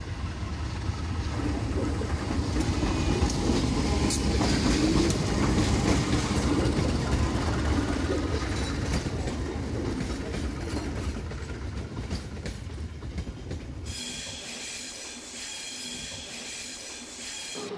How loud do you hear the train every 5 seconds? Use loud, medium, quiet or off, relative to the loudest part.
loud, loud, medium, medium.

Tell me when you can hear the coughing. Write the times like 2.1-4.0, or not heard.
not heard.